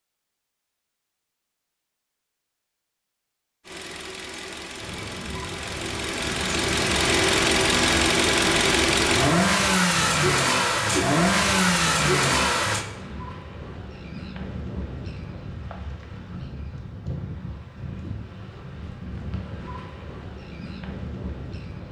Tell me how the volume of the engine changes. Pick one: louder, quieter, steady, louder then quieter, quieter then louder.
louder.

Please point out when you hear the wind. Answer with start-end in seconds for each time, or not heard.
4.8-21.8.